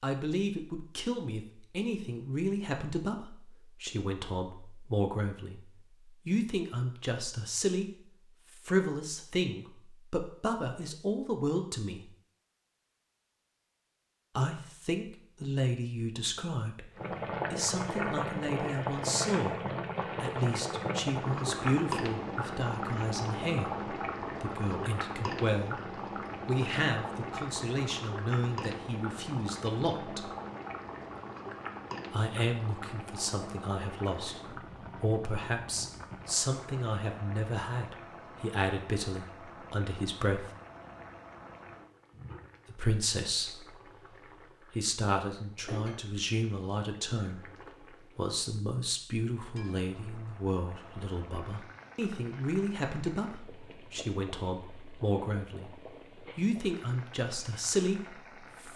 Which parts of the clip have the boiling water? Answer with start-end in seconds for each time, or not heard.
16.9-58.7.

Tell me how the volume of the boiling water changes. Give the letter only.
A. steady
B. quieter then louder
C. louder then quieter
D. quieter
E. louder
D.